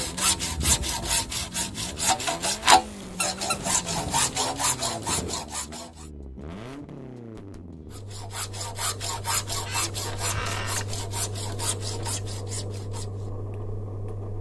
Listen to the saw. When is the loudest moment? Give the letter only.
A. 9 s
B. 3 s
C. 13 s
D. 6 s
B.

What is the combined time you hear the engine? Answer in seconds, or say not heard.
14 s.